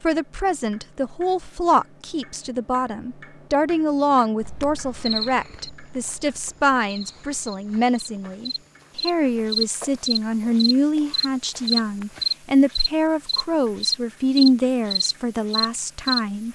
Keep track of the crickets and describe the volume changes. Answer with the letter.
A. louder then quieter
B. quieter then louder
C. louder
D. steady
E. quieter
C.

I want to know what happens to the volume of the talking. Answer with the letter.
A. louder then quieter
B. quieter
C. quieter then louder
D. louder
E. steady
E.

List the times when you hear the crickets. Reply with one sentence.
You can hear the crickets from 4.4 to 16.5 s.